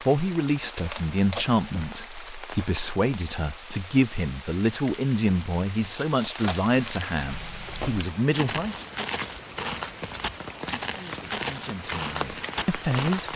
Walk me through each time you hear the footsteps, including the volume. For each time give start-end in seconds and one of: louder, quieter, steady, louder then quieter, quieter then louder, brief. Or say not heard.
7.2-13.3 steady.